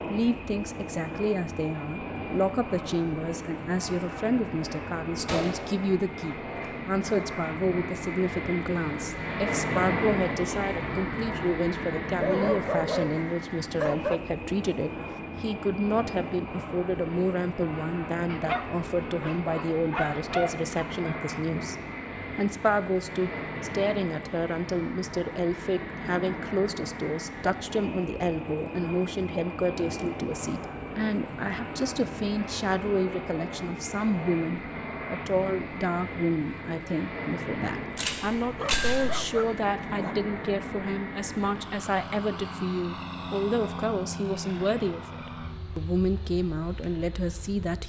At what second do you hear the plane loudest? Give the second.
10 s.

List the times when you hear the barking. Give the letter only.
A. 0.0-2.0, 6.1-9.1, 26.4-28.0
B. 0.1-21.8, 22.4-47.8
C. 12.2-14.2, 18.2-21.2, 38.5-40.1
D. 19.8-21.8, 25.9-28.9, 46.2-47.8
C.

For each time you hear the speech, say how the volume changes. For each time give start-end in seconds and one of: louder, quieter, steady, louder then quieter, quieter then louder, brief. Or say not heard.
0.1-21.8 steady
22.4-47.8 steady.